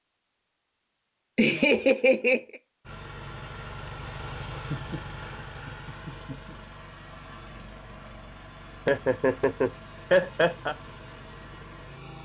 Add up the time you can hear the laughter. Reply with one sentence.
The laughter can be heard for 5 seconds in total.